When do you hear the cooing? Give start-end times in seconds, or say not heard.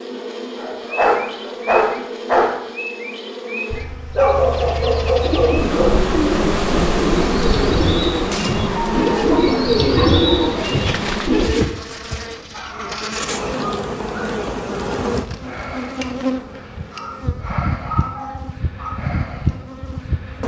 5.2-11.7.